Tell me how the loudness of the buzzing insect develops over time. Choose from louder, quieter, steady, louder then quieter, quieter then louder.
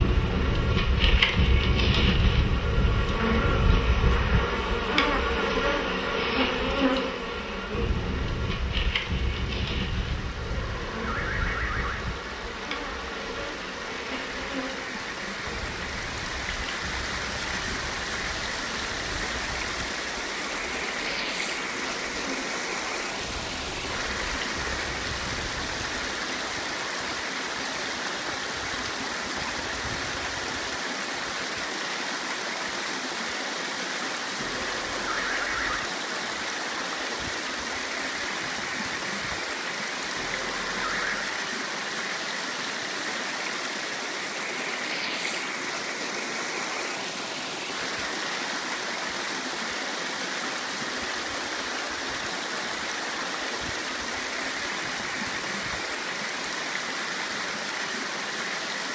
quieter.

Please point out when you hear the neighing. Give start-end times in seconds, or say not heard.
10.4-12.1, 34.4-35.9, 40.1-41.4.